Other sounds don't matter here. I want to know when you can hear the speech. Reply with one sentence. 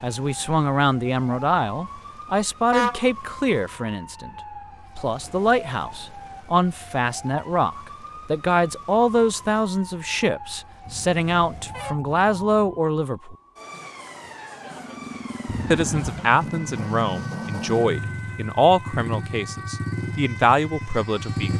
The speech can be heard from 0.0 to 4.3 s, from 5.0 to 13.3 s and from 15.7 to 21.5 s.